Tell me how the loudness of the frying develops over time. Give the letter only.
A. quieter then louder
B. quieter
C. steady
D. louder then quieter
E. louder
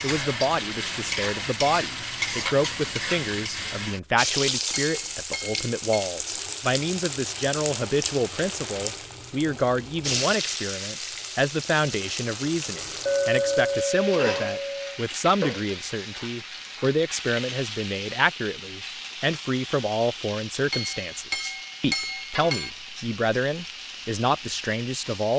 B.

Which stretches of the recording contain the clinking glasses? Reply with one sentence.
The clinking glasses can be heard from 4.7 to 6.1 s, from 13.1 to 15.0 s and from 20.7 to 22.7 s.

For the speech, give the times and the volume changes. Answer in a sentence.
You can hear the speech from 0.0 to 25.3 s, at a steady volume.